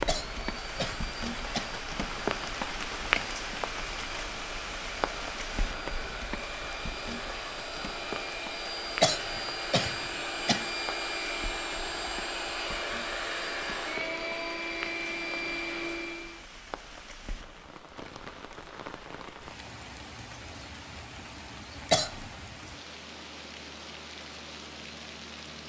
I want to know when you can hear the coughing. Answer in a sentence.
You can hear the coughing from 0.1 to 1.7 s, from 9.0 to 10.7 s and from 21.9 to 22.3 s.